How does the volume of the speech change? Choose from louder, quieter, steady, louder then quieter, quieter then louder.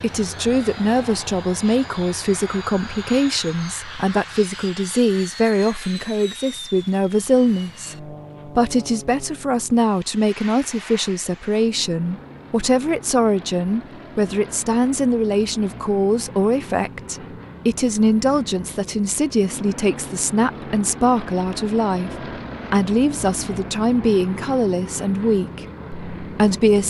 steady.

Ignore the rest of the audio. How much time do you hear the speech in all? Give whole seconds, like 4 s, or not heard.
27 s.